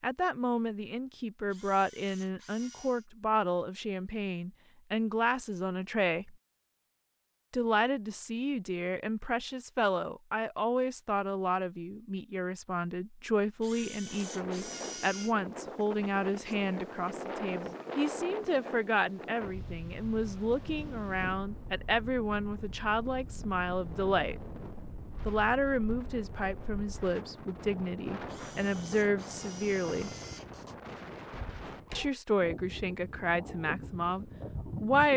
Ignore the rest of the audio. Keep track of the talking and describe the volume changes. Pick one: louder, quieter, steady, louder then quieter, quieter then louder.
steady.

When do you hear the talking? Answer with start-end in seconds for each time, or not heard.
0.0-6.3, 7.5-24.4, 25.2-30.1, 31.9-35.1.